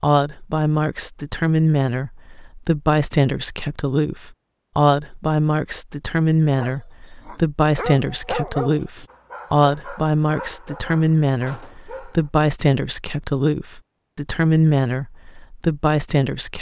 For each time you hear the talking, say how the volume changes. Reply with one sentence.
You can hear the talking from 0.0 to 16.5 s, at a steady volume.